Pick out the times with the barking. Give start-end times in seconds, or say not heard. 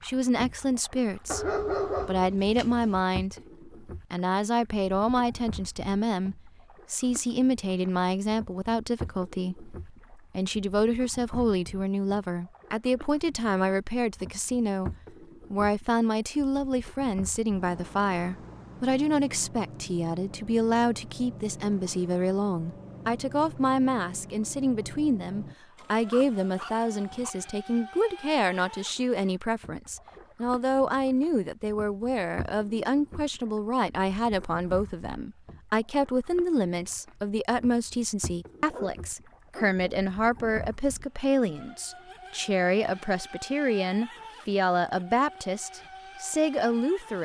1.2-3.0, 25.8-27.3, 38.7-40.6.